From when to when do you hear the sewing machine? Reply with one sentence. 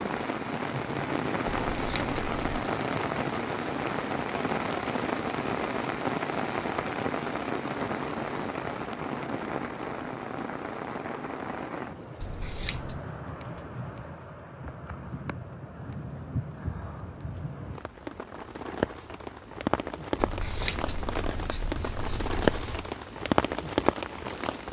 You can't hear the sewing machine here.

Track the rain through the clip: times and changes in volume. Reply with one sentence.
You can hear the rain from 0.0 to 24.6 s, getting quieter then louder.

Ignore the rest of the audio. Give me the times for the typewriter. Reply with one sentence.
You can't hear the typewriter here.